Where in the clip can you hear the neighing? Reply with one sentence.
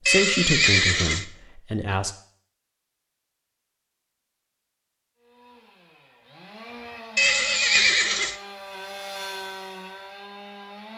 The neighing can be heard from 0.1 to 1.2 s and from 7.2 to 8.3 s.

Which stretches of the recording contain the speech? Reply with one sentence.
The speech can be heard from 0.1 to 2.1 s.